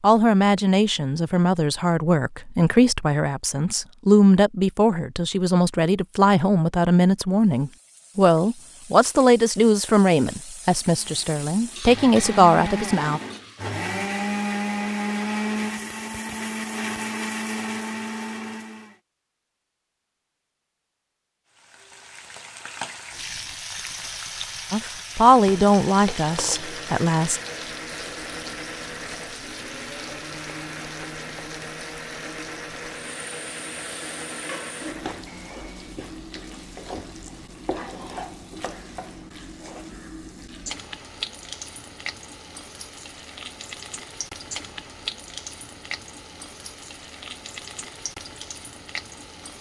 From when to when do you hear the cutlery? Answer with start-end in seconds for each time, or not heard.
not heard.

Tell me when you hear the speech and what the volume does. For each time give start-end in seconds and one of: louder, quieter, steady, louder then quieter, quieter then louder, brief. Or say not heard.
0.0-13.2 steady
24.7-27.4 brief.